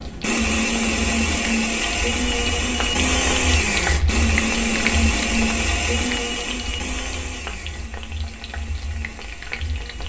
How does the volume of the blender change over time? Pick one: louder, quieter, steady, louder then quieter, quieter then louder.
quieter.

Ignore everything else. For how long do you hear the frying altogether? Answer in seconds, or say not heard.
10 s.